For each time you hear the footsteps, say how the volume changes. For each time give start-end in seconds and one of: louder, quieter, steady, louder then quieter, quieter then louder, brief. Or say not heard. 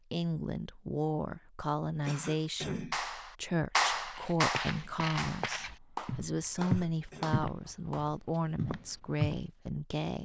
4.0-9.4 louder then quieter.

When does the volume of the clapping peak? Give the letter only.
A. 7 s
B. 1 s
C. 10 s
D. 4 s
D.